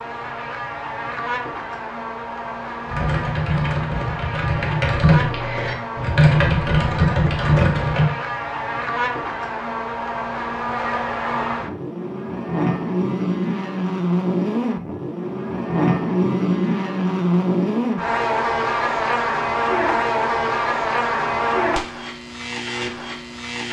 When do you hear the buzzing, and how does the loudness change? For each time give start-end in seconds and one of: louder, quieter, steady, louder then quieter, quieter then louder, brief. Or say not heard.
0.0-23.6 louder.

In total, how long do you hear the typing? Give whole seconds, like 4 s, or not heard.
5 s.